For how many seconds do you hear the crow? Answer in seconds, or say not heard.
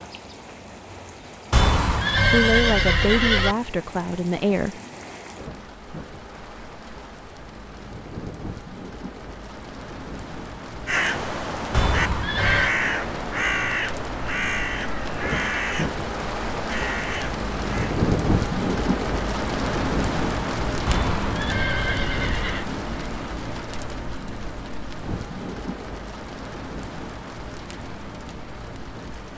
7 s.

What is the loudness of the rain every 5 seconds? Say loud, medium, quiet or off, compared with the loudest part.
quiet, quiet, medium, loud, loud, medium.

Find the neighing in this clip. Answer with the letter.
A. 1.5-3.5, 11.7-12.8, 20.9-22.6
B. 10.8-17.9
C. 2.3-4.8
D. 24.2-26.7
A.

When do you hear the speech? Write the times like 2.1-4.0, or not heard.
2.3-4.8.